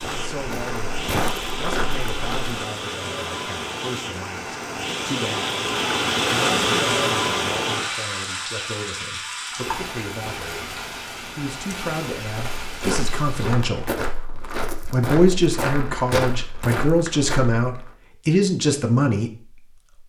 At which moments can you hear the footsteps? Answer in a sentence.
The footsteps can be heard from 0.0 to 2.5 s and from 12.2 to 17.9 s.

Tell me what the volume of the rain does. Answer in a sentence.
The volume of the rain goes up, then down.